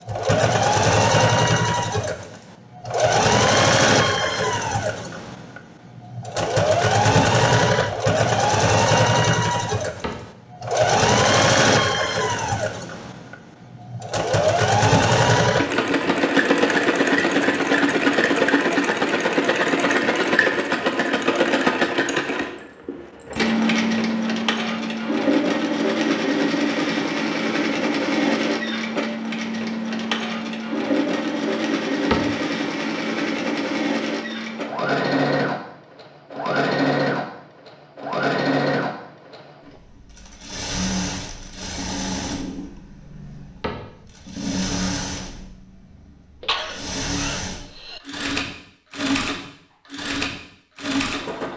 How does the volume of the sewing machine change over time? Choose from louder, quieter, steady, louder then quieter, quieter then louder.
quieter.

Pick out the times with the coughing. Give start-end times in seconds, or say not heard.
46.4-48.0.